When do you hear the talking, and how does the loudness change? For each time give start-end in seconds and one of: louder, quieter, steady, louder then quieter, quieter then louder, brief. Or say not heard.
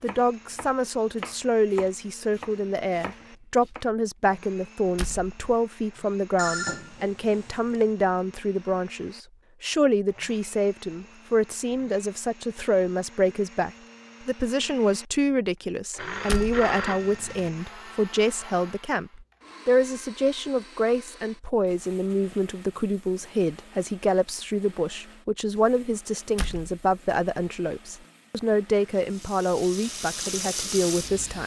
0.0-31.4 steady.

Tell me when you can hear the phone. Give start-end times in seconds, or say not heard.
6.3-7.9, 15.9-17.5.